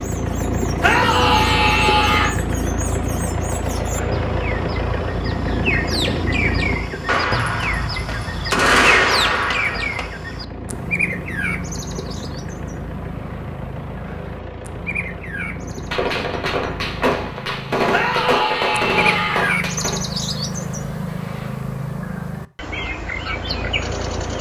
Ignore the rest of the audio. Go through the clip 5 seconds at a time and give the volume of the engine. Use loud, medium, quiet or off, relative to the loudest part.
loud, loud, medium, medium, medium.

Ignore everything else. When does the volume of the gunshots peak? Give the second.
9 s.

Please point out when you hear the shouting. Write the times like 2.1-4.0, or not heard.
0.8-2.4, 17.9-19.6.